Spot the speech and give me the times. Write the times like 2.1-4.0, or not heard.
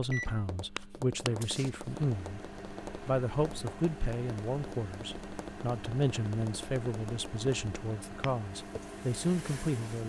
0.0-10.0.